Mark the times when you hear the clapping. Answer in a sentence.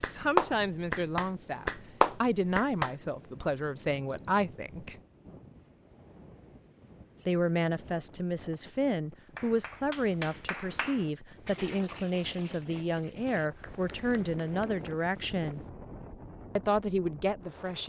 The clapping can be heard from 0.0 to 3.5 s and from 9.2 to 15.1 s.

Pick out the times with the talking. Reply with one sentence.
You can hear the talking from 0.0 to 5.0 s, from 7.2 to 15.6 s and from 16.6 to 17.8 s.